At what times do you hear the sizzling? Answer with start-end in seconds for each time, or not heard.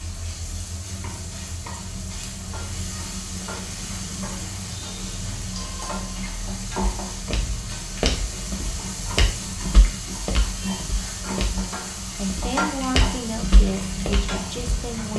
0.0-15.1.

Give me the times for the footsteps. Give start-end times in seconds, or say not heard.
6.8-15.1.